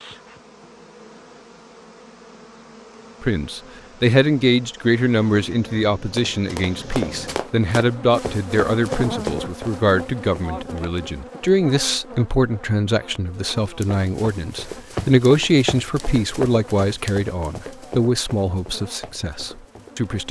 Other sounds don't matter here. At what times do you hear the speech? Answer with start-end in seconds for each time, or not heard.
3.2-20.2.